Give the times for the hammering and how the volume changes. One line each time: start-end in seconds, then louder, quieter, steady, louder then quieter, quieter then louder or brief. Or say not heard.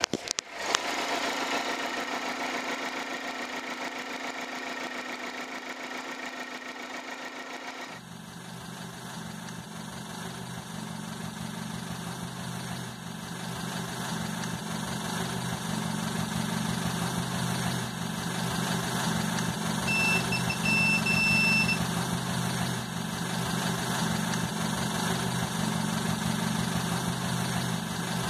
not heard.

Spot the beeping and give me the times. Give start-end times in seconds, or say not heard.
19.9-21.9.